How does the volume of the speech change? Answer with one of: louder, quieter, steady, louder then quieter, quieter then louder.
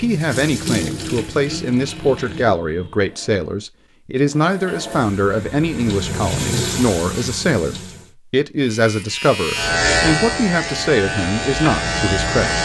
steady.